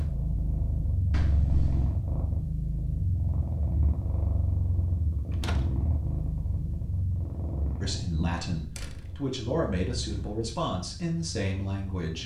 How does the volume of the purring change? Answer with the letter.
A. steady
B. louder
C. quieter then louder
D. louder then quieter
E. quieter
E.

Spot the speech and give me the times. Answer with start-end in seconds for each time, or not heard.
7.8-12.2.